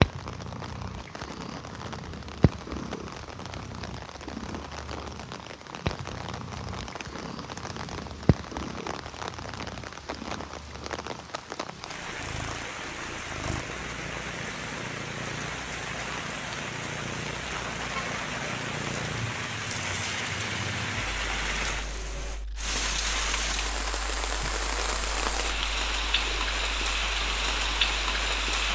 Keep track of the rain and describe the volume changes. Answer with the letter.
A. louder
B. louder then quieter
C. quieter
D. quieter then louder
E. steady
A.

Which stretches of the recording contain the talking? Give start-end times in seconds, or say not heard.
not heard.